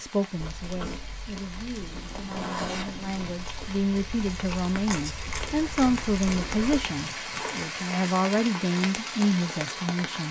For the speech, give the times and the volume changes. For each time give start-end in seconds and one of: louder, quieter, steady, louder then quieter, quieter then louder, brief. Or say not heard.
0.0-10.2 louder.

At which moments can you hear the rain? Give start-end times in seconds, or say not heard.
0.0-10.2.